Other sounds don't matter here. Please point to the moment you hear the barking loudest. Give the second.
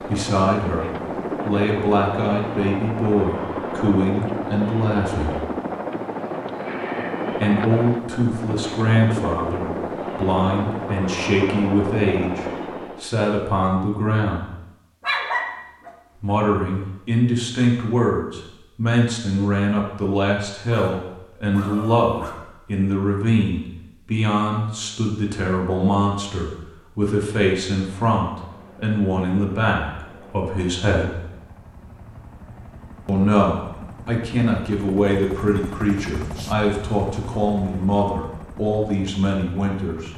15 s.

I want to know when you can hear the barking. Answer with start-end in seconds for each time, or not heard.
15.0-15.9, 20.7-22.6.